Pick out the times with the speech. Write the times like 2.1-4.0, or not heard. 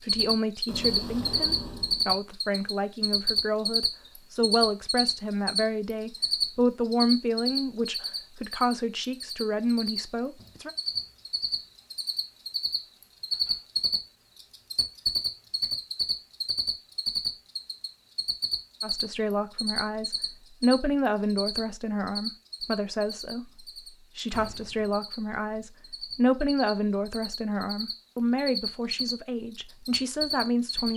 0.0-10.7, 18.8-30.9.